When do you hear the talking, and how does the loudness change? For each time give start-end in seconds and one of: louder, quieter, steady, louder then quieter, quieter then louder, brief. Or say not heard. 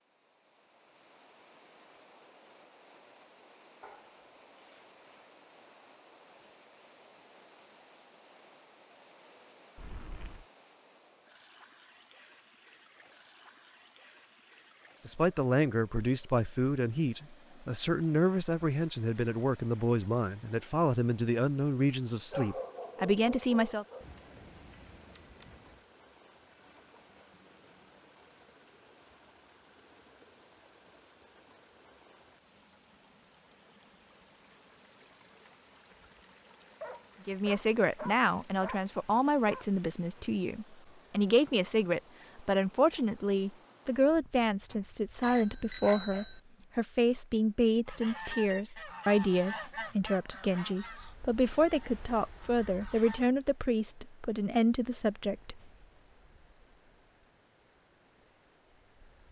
15.1-23.9 steady
37.2-55.5 steady.